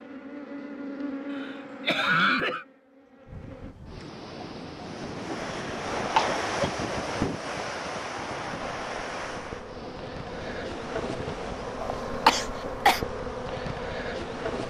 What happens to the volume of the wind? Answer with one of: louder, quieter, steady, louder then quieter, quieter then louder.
louder then quieter.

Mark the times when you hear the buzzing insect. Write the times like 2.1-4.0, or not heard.
0.0-3.8, 8.6-14.6.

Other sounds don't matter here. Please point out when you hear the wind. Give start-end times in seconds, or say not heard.
3.2-14.4.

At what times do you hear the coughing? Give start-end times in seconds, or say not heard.
1.3-2.6, 5.5-6.5, 11.8-13.0.